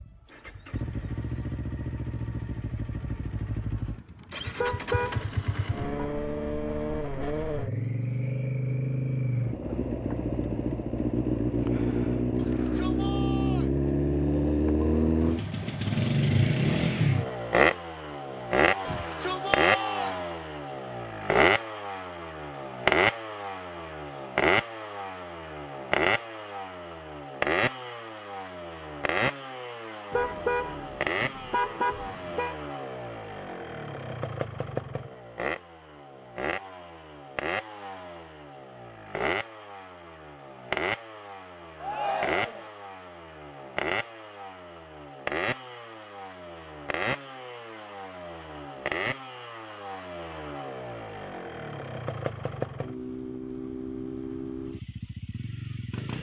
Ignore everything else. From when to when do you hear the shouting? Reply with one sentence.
You can hear the shouting from 12.3 to 13.7 s, from 18.9 to 20.1 s and from 41.8 to 42.7 s.